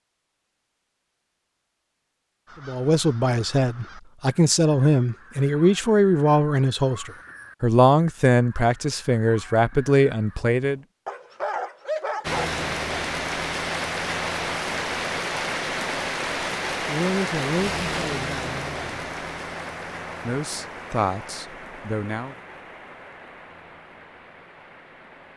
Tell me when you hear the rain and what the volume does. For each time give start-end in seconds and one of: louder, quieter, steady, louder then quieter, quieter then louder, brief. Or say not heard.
12.2-25.3 quieter.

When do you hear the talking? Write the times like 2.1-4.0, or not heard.
2.6-10.8, 16.9-18.9, 20.2-22.4.